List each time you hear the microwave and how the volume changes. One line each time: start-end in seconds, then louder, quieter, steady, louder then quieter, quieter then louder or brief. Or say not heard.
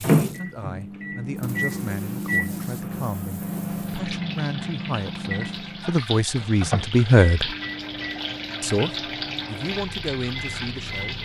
0.0-11.2 quieter.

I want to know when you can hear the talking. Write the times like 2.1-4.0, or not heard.
0.0-7.5, 8.6-11.2.